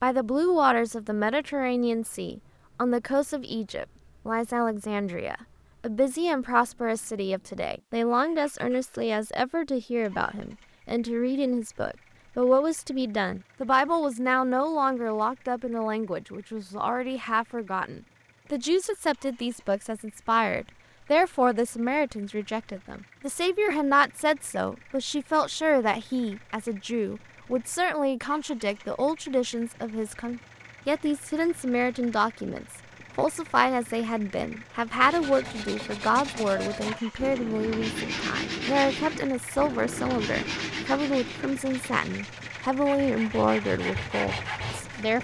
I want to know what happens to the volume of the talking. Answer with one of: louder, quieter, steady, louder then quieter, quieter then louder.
steady.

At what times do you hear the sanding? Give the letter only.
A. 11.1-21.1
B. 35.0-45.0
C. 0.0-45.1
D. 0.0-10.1
B.